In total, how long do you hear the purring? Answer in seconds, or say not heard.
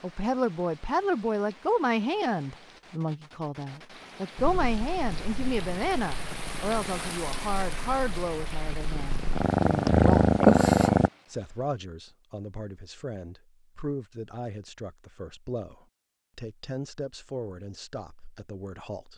7 s.